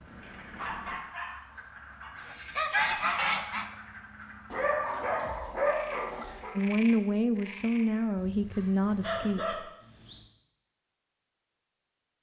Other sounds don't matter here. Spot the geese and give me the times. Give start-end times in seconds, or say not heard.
2.1-3.6.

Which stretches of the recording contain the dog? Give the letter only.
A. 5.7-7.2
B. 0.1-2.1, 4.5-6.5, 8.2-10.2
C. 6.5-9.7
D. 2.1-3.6
B.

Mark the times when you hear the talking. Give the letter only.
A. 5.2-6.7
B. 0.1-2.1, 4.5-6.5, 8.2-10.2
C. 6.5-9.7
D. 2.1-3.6
C.